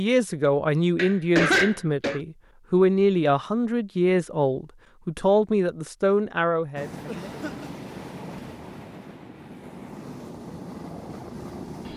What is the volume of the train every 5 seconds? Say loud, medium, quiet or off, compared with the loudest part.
off, loud, loud.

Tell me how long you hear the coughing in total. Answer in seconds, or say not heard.
2 s.